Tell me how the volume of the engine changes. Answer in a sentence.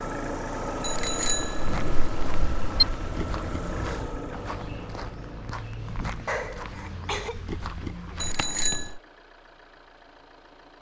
The loudness of the engine goes down.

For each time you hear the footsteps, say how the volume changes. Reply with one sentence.
The footsteps can be heard from 1.6 to 8.8 s, at a steady volume.